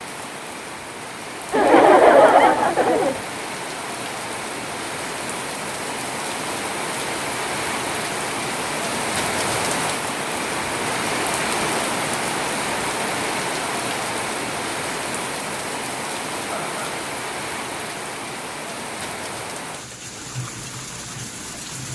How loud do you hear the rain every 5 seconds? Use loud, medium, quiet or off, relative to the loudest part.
medium, loud, loud, medium, medium.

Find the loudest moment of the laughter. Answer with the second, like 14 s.
2 s.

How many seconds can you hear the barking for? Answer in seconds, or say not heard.
not heard.